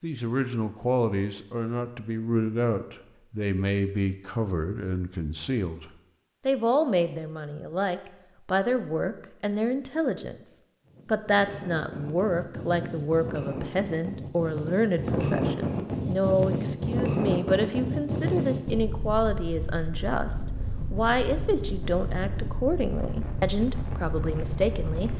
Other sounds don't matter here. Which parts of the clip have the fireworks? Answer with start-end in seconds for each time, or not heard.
not heard.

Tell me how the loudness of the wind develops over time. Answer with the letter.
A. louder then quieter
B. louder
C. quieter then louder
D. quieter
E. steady
A.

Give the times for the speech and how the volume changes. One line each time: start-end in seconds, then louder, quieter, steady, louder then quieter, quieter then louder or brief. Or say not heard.
0.0-25.1 steady.